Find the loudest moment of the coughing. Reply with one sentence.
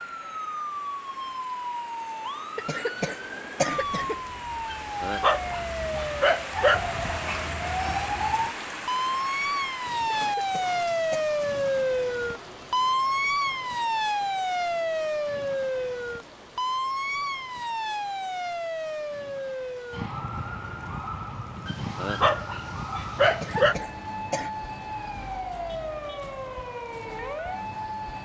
The loudest moment of the coughing is at 4 seconds.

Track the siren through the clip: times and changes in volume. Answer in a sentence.
You can hear the siren from 0.0 to 28.1 s, getting louder then quieter.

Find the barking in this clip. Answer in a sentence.
The barking can be heard from 4.7 to 7.5 s and from 21.6 to 23.8 s.